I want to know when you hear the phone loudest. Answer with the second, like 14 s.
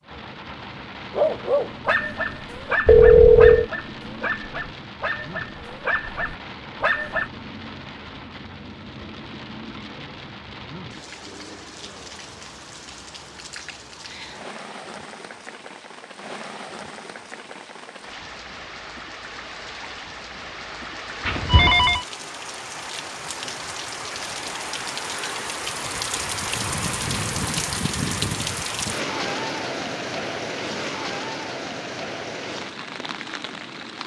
3 s.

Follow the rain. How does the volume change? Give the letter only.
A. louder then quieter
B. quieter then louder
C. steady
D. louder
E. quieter
D.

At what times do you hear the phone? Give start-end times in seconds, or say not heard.
2.9-3.6, 21.2-22.1.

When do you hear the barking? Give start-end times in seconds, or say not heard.
1.1-7.3.